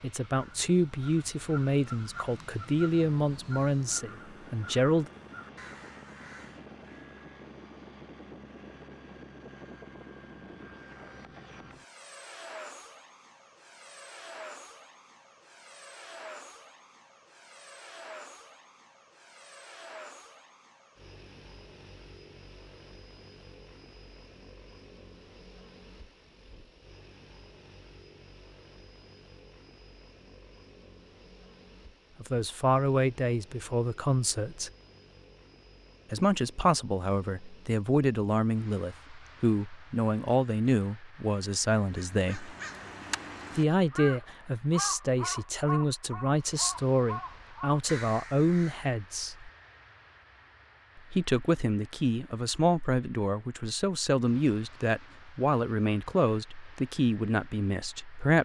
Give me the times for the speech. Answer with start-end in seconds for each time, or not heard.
0.0-5.1, 32.2-34.7, 36.1-42.5, 43.5-49.5, 51.0-58.4.